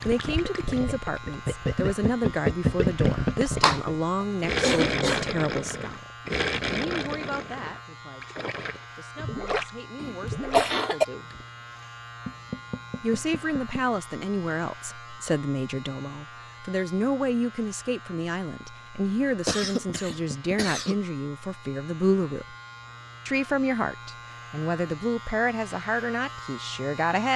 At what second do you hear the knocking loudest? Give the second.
3 s.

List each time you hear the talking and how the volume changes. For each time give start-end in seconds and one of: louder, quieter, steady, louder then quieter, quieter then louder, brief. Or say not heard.
0.1-11.3 quieter
13.0-22.6 steady
23.2-27.3 quieter.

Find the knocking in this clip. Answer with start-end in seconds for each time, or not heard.
1.8-3.5, 12.2-14.0, 19.6-20.6.